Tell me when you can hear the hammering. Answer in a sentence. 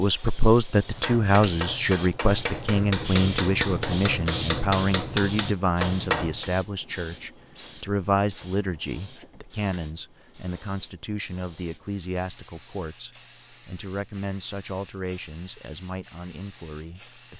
The hammering can be heard from 0.9 to 6.5 s.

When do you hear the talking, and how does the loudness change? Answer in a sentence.
The talking can be heard from 0.0 to 17.3 s, getting quieter.